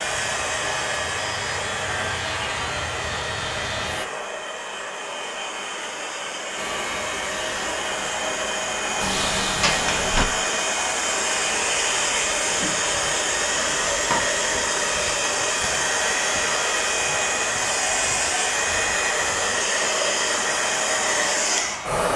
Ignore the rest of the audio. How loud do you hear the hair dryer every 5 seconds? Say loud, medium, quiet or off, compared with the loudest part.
medium, medium, loud, loud, loud.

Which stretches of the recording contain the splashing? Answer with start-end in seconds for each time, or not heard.
not heard.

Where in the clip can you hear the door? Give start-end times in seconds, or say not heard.
9.0-10.2.